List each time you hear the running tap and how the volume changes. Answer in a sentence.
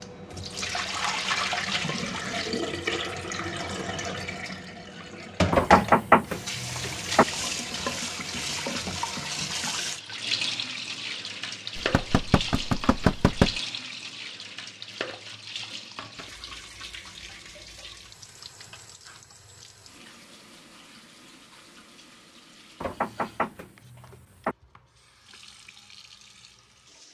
You can hear the running tap from 0.0 to 27.0 s, getting quieter.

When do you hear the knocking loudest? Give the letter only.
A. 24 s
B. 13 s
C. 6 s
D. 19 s
C.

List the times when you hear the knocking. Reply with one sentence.
You can hear the knocking from 5.5 to 7.2 s, from 11.8 to 13.6 s and from 22.8 to 24.6 s.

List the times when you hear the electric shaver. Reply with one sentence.
The electric shaver can't be heard in this clip.